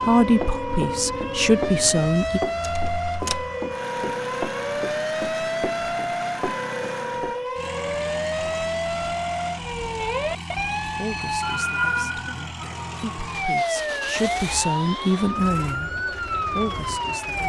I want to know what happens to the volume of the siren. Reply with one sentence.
The volume of the siren stays about the same.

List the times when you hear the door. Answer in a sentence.
You can hear the door from 2.6 to 3.5 s.